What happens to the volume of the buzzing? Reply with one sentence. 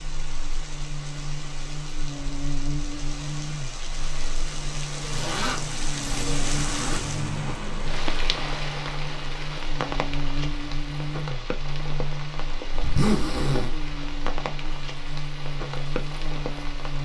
The loudness of the buzzing stays about the same.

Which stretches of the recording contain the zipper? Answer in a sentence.
The zipper can be heard from 5.1 to 7.0 s and from 12.7 to 13.7 s.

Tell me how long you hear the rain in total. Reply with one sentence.
The rain can be heard for 17 seconds in total.